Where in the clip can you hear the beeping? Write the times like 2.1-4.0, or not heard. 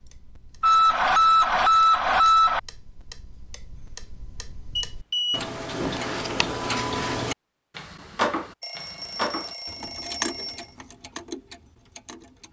0.6-2.6, 4.8-5.5, 8.6-10.7.